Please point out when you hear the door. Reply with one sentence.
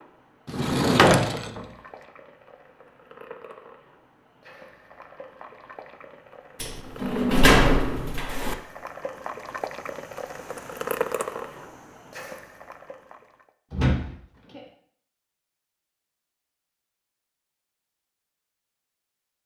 The door can be heard from 0.5 to 1.6 s, from 6.6 to 8.6 s and from 13.7 to 14.6 s.